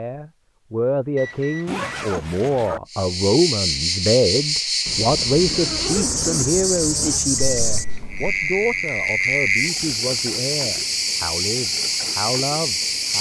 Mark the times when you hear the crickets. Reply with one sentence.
You can hear the crickets from 2.9 to 13.1 s.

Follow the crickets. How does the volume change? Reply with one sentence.
The volume of the crickets stays about the same.